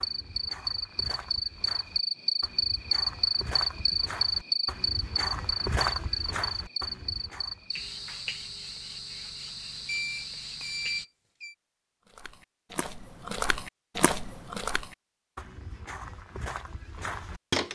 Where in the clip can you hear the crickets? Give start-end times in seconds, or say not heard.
0.0-11.1.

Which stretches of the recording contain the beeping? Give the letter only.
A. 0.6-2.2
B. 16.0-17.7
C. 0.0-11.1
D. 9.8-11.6
D.